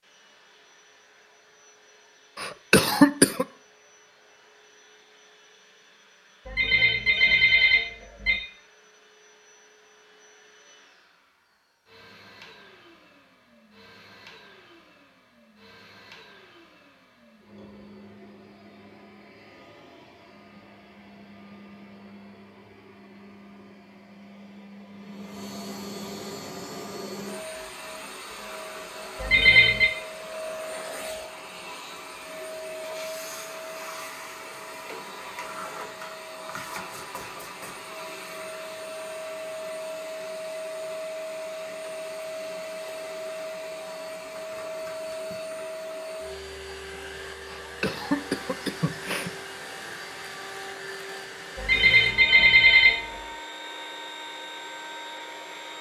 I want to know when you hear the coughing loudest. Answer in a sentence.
The loudest moment of the coughing is at 3 seconds.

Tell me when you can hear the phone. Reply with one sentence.
You can hear the phone from 6.5 to 8.4 s, from 29.2 to 29.9 s and from 51.5 to 53.0 s.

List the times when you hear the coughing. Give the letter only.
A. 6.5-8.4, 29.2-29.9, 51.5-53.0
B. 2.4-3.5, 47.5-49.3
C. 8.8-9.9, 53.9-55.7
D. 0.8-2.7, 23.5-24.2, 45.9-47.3
B.